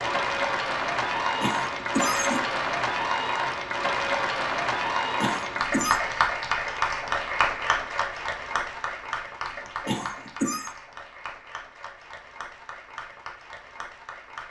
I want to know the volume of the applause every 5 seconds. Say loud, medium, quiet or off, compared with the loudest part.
loud, loud, quiet.